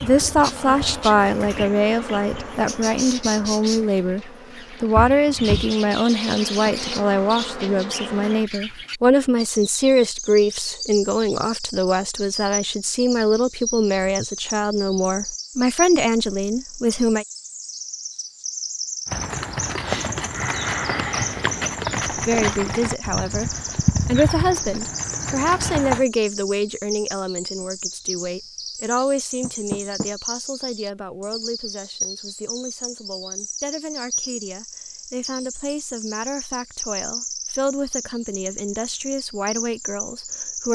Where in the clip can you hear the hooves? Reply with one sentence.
You can hear the hooves from 19.1 to 26.1 s.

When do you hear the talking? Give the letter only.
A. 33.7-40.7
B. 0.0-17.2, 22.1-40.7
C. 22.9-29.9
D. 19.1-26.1
B.